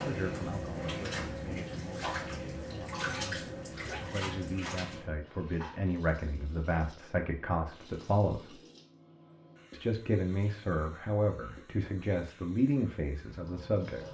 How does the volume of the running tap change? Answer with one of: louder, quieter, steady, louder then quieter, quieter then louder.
quieter.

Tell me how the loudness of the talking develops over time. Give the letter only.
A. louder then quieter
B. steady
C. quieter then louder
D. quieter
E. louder
E.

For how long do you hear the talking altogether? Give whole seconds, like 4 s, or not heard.
13 s.